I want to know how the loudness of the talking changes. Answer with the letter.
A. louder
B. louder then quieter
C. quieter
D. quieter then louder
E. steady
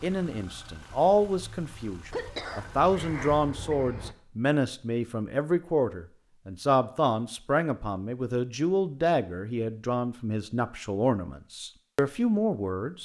E.